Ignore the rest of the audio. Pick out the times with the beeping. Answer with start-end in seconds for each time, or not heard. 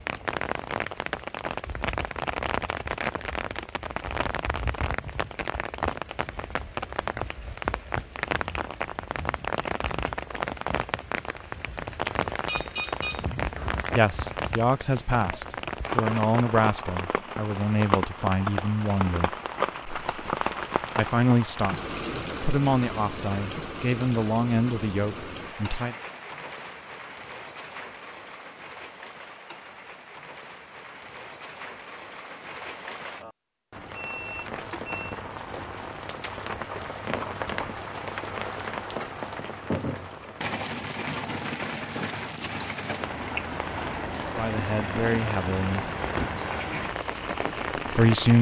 12.2-13.2, 34.0-35.2.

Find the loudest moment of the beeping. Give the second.
13 s.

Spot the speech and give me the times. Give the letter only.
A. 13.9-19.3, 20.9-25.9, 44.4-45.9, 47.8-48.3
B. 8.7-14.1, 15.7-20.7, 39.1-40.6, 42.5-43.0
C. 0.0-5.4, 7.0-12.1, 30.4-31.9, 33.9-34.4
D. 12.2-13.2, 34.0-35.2
A.